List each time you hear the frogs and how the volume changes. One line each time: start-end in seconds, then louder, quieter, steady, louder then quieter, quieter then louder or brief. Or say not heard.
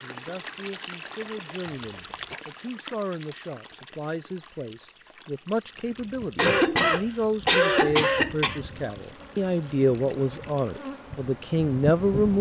not heard.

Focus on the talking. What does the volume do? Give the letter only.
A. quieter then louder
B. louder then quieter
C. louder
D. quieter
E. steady
C.